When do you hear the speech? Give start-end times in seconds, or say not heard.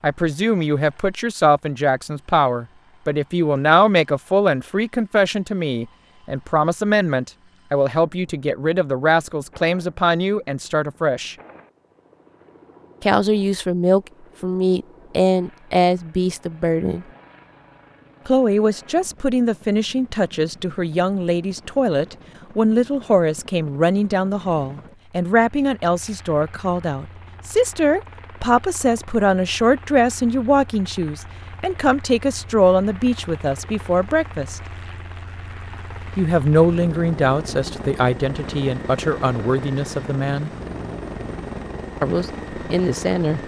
0.0-11.3, 13.0-17.1, 18.2-34.6, 36.1-40.5, 42.0-43.4.